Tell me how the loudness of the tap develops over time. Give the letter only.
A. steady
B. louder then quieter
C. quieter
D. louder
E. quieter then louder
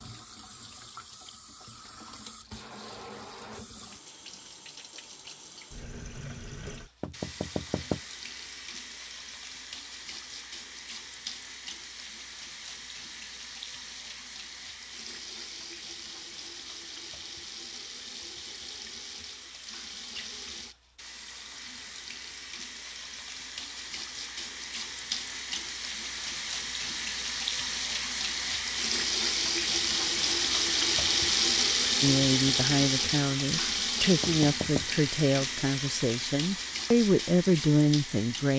D.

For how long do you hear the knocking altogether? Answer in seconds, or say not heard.
2 s.